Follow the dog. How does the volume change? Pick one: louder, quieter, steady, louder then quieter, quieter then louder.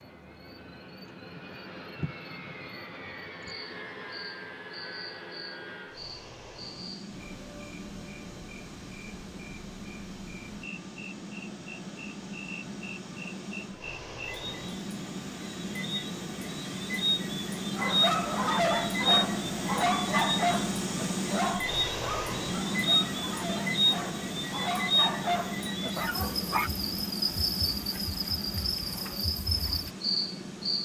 quieter then louder.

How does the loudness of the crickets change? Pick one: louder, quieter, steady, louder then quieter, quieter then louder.
louder.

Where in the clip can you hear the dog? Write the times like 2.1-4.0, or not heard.
17.8-26.7.